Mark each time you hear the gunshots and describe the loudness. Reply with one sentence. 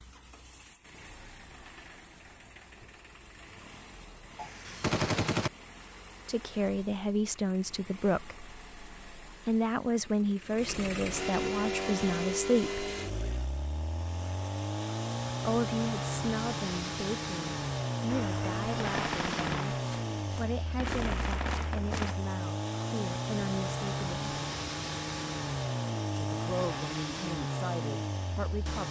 The gunshots can be heard briefly from 4.3 to 5.5 s; and from 18.1 to 22.1 s, getting quieter then louder.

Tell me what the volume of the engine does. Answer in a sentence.
The loudness of the engine goes up.